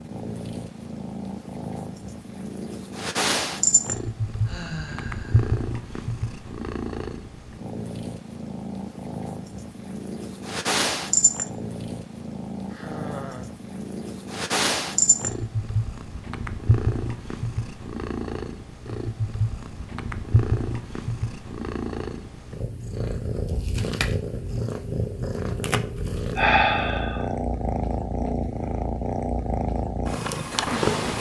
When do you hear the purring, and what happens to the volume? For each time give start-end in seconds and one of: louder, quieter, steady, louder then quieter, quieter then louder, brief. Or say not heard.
0.0-31.1 steady.